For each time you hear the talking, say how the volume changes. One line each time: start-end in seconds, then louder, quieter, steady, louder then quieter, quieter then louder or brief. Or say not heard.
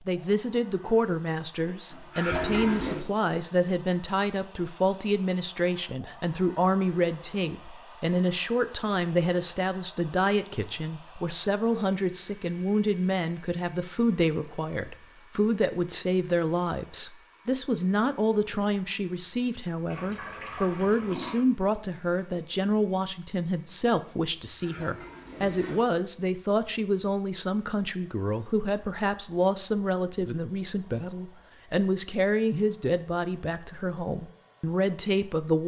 0.1-35.6 steady.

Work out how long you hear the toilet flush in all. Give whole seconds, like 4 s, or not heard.
4 s.